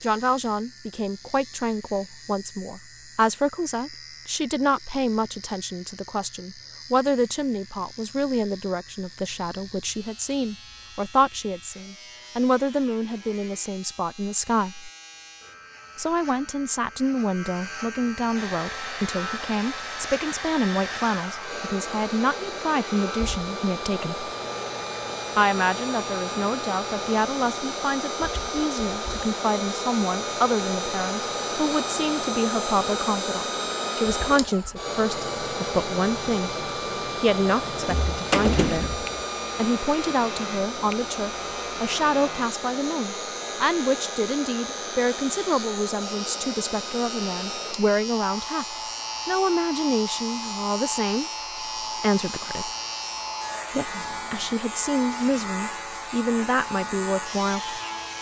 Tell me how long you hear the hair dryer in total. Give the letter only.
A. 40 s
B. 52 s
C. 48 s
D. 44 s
A.